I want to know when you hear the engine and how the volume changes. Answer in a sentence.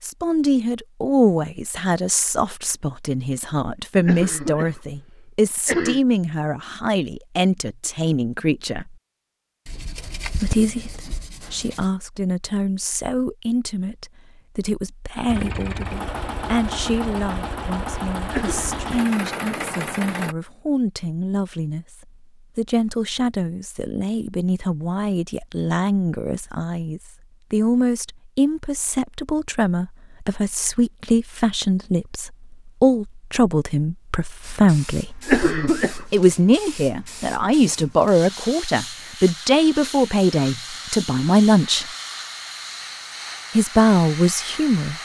You can hear the engine from 15.2 to 20.4 s, at a steady volume.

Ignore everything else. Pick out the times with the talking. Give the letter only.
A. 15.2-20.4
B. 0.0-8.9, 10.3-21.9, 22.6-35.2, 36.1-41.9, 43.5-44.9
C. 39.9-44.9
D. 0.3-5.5
B.